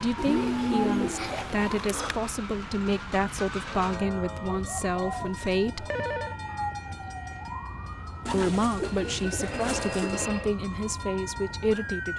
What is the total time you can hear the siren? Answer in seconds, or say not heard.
12 s.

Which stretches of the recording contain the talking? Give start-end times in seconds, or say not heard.
0.0-5.8, 8.3-12.1.